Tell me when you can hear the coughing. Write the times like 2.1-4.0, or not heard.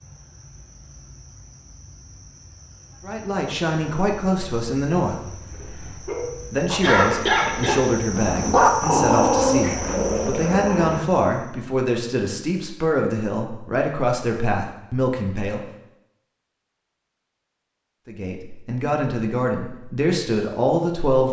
6.8-7.8.